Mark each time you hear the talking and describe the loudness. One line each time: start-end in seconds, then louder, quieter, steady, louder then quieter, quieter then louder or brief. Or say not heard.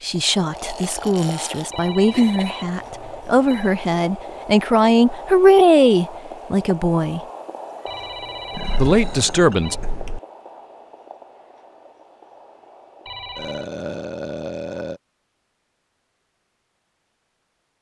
0.0-7.2 louder
8.8-9.8 brief.